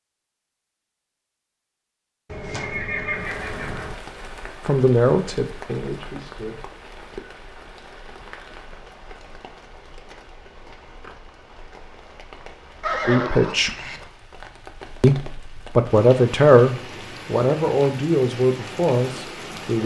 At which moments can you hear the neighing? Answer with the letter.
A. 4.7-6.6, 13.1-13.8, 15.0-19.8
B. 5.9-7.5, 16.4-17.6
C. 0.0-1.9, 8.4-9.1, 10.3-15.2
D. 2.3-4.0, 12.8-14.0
D.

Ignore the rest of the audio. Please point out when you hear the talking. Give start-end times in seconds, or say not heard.
4.7-6.6, 13.1-13.8, 15.0-19.8.